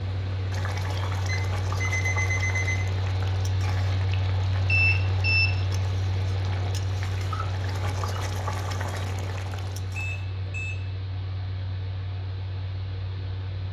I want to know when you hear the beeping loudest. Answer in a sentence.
The loudest moment of the beeping is at 5 seconds.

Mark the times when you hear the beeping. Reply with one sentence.
You can hear the beeping from 1.2 to 2.9 s, from 4.7 to 5.5 s and from 9.9 to 10.8 s.